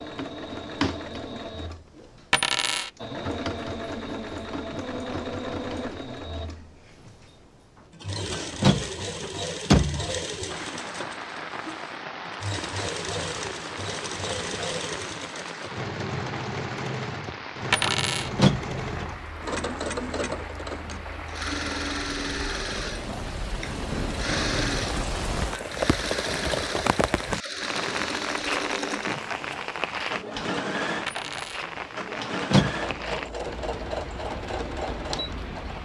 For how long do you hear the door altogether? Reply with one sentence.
You can hear the door for 3 seconds altogether.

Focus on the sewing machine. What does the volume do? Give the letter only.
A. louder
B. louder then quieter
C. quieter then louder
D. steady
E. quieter
D.